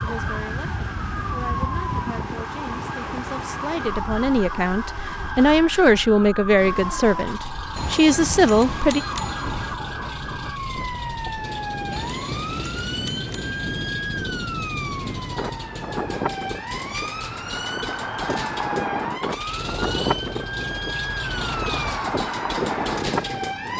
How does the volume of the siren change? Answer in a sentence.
The loudness of the siren stays about the same.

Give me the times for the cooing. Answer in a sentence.
You can't hear the cooing here.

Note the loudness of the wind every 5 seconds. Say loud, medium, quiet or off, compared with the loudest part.
medium, quiet, medium, loud, loud.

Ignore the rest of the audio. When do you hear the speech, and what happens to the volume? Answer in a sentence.
The speech can be heard from 0.0 to 9.0 s, getting louder.